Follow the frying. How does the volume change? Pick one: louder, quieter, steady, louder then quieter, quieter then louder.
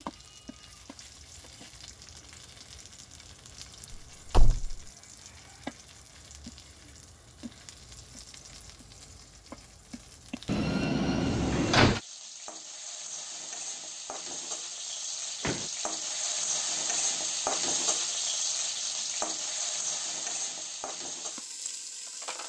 louder.